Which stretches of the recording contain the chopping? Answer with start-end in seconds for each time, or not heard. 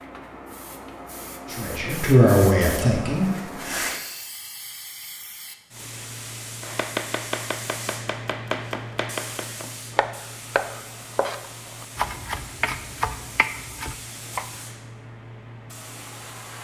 6.6-14.5.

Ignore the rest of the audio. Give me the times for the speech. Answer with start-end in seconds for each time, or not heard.
1.5-3.4.